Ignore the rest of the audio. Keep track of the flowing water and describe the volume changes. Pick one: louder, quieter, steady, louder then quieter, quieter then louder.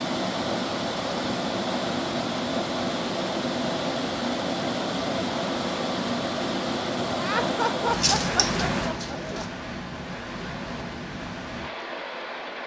quieter.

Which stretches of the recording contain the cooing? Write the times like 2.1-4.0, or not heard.
7.9-9.4.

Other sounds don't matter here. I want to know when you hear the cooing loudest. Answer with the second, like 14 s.
8 s.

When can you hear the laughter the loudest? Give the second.
8 s.